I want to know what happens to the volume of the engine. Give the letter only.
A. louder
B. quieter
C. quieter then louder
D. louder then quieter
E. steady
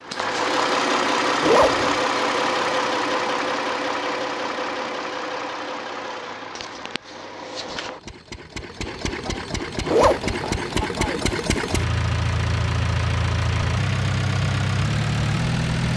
C.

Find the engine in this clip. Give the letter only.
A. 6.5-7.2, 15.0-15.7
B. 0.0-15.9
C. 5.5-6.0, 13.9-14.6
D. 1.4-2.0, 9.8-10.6
B.